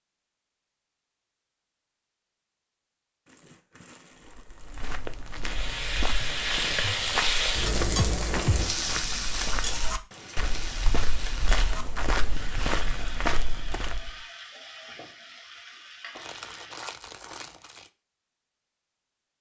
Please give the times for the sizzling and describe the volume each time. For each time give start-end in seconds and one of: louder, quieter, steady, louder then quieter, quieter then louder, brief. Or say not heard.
5.4-16.9 quieter.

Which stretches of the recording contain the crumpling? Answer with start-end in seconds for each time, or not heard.
3.2-5.0, 16.1-17.9.